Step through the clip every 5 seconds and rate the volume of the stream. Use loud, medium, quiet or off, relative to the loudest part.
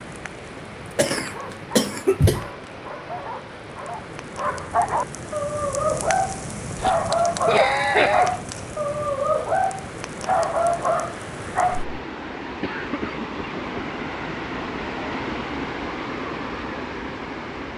medium, medium, loud, loud.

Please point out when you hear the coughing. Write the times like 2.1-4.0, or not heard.
0.6-2.5, 6.8-8.3, 12.6-13.9.